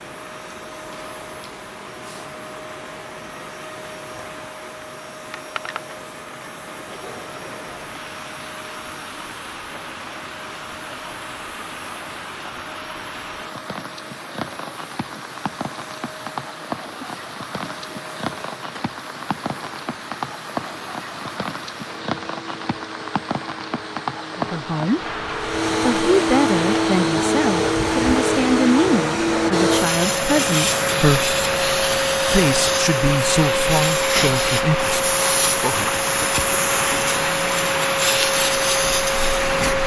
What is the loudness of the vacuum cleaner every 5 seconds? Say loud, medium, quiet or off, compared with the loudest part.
quiet, quiet, quiet, quiet, quiet, loud, loud, loud.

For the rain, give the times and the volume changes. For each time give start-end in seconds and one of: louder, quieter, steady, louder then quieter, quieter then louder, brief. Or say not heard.
0.0-39.8 louder.